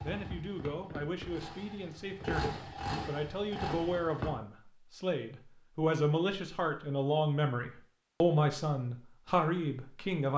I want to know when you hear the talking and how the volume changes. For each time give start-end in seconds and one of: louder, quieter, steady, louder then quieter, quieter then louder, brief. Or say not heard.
0.0-10.3 louder.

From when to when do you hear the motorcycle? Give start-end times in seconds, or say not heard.
0.0-4.3.